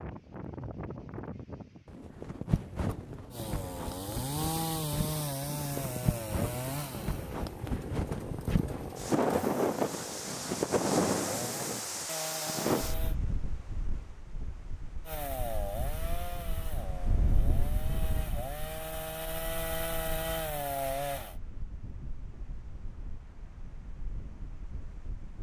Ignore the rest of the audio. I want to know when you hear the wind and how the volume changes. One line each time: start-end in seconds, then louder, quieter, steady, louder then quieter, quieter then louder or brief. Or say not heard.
0.0-25.3 louder then quieter.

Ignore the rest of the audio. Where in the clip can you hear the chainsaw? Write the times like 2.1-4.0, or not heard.
3.3-13.2, 15.1-21.4.